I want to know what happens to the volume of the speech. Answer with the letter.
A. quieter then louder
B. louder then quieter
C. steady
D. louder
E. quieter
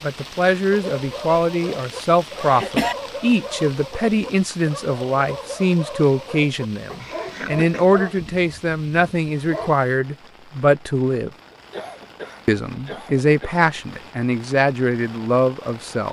C.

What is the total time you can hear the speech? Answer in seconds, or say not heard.
15 s.